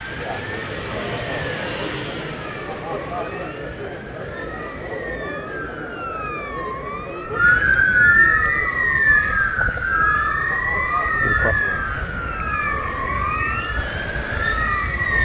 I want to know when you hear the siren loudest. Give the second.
8 s.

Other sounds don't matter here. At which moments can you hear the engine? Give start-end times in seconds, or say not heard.
0.0-5.1, 13.8-15.2.